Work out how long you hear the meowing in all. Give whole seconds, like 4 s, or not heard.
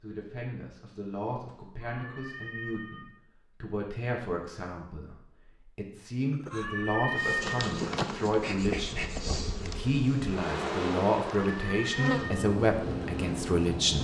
4 s.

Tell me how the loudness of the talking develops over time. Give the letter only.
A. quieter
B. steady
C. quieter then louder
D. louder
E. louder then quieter
D.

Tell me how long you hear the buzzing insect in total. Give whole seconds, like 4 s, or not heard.
7 s.